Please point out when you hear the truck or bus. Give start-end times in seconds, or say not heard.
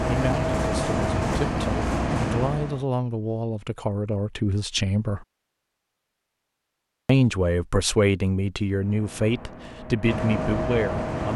0.0-2.9, 8.7-11.3.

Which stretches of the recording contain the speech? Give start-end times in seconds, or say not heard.
0.1-5.2, 7.0-11.3.